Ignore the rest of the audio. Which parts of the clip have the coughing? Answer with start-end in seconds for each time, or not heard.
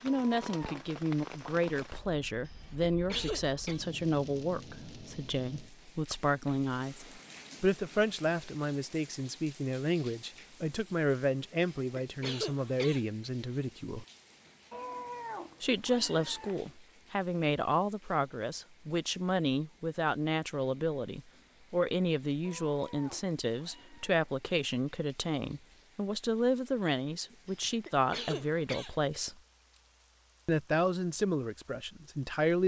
2.5-3.8, 11.6-13.1, 27.5-28.9.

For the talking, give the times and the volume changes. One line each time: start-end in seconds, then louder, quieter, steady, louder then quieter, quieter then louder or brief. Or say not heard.
0.0-14.1 steady
15.6-29.4 steady
30.4-32.6 brief.